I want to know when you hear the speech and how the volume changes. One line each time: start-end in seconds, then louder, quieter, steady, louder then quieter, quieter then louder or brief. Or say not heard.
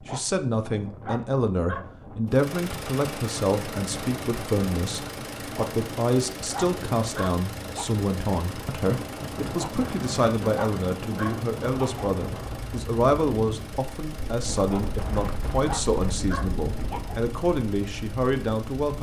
0.1-18.9 steady.